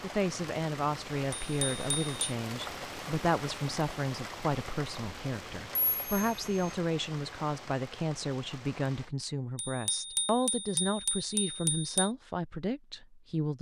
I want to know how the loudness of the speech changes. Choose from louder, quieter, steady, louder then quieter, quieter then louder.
steady.